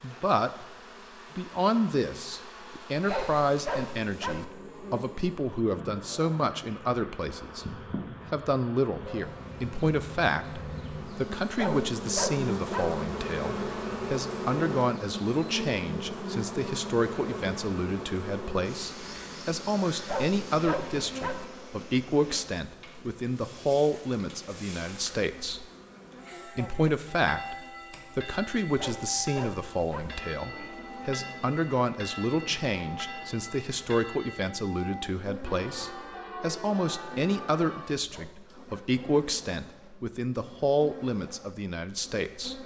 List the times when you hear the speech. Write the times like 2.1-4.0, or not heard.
0.0-0.7, 1.4-25.6, 26.6-27.6, 28.1-42.6.